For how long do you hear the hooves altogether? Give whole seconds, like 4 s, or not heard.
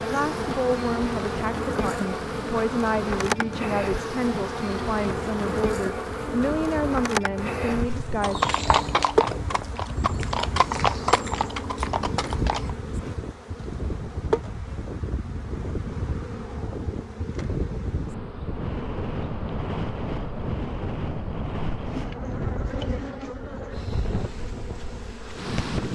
5 s.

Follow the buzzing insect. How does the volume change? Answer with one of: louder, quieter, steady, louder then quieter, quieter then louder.
quieter.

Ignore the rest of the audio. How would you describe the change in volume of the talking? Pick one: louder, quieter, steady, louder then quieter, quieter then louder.
steady.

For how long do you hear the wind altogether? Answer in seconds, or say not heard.
26 s.